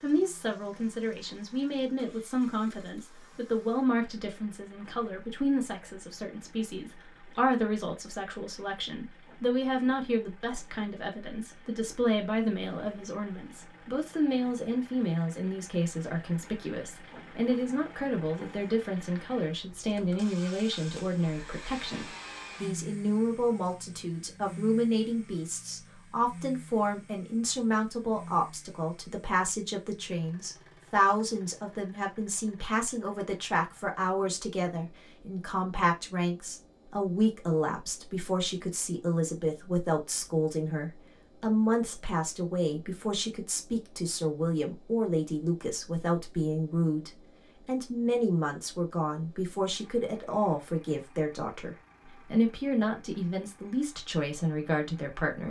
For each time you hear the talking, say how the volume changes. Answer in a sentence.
The talking can be heard from 0.0 to 55.4 s, at a steady volume.